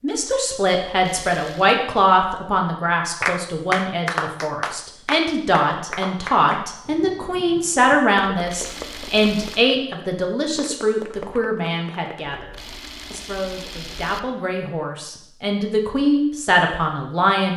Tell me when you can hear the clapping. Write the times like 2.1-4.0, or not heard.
3.2-12.4.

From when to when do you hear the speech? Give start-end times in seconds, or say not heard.
0.0-12.5, 13.1-17.5.